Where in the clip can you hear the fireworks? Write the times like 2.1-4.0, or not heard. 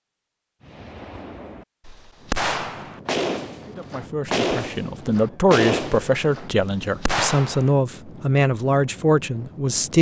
0.6-7.7.